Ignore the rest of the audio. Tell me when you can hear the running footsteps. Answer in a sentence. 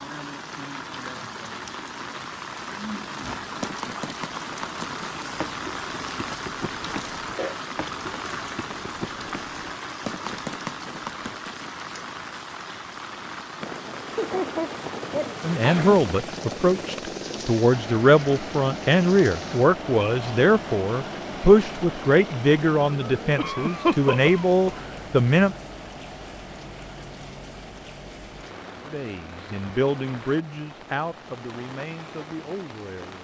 You can hear the running footsteps from 3.2 to 11.7 s.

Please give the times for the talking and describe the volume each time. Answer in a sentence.
The talking can be heard from 15.4 to 25.6 s, at a steady volume; and from 28.9 to 33.1 s, getting quieter.